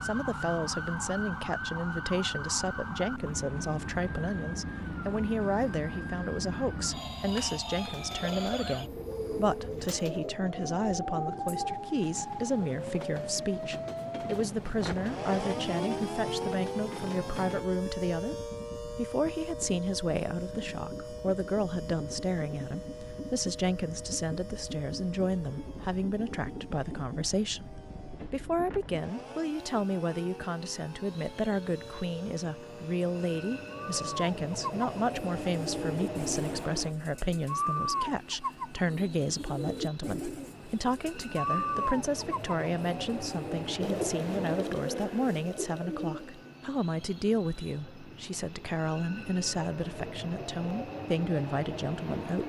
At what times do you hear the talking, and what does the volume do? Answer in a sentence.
The talking can be heard from 0.0 to 52.4 s, at a steady volume.